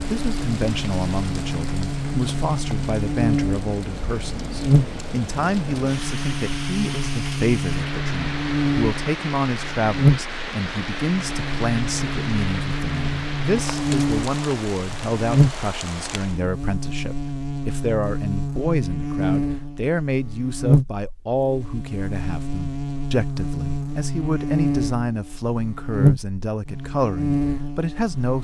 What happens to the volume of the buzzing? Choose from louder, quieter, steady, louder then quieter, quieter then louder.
steady.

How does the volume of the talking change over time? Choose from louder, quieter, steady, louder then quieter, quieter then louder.
steady.